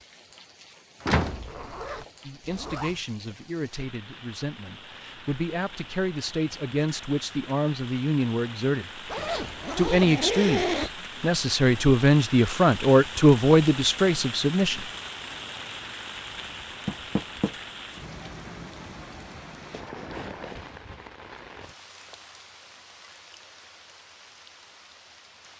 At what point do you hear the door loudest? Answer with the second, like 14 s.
1 s.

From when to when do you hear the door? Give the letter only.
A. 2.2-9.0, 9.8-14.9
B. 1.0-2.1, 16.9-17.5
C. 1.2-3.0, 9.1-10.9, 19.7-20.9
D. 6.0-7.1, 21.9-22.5
B.